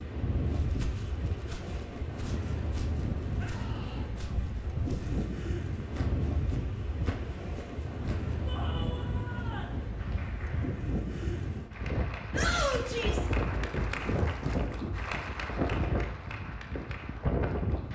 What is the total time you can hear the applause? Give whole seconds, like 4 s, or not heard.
8 s.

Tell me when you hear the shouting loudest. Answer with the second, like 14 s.
13 s.